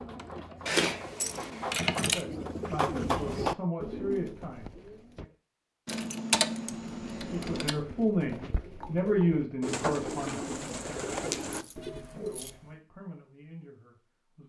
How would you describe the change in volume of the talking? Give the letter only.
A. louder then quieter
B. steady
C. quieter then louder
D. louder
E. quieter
A.